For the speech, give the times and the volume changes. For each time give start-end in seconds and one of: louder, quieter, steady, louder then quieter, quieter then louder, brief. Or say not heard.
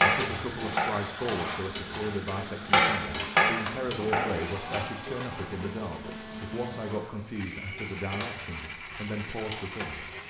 0.0-10.1 steady.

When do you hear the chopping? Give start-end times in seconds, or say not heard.
0.0-5.5.